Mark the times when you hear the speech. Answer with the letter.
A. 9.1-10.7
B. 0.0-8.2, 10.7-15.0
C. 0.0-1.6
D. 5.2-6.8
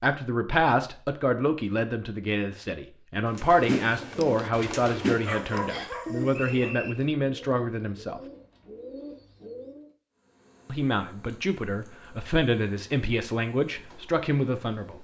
B.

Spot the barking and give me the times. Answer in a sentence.
You can hear the barking from 5.2 to 6.8 s.